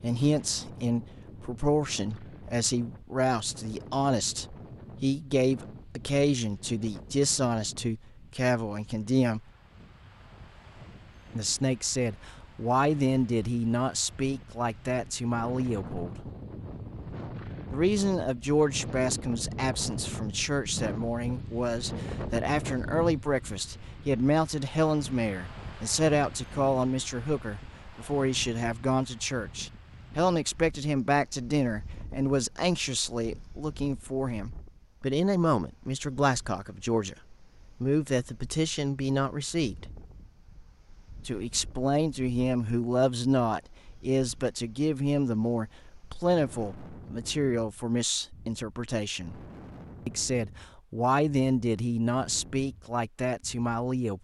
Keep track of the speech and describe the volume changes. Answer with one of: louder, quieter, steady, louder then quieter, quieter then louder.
steady.